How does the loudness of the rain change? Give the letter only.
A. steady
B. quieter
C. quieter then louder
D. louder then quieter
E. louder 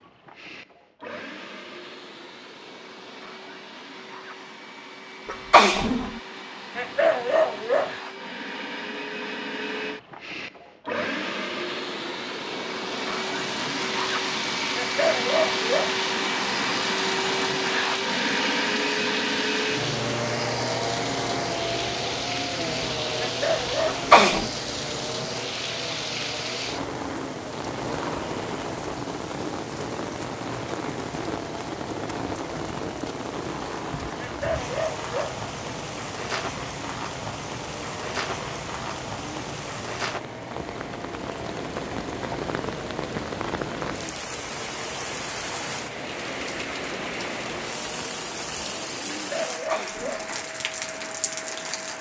A.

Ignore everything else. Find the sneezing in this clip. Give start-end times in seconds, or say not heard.
5.2-6.2, 23.9-24.5, 49.7-50.4.